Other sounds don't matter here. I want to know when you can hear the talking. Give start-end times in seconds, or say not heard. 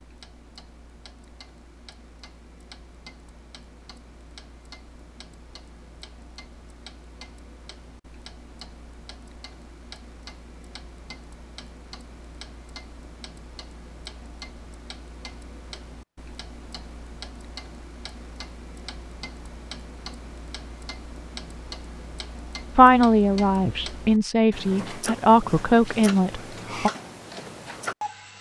22.8-26.9.